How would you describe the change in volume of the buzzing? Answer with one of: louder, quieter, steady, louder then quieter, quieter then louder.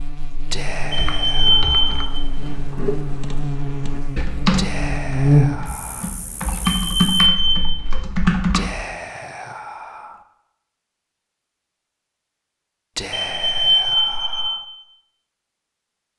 louder then quieter.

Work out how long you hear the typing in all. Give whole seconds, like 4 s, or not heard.
8 s.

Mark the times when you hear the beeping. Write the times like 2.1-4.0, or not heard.
0.9-2.1, 6.7-7.6, 13.1-14.5.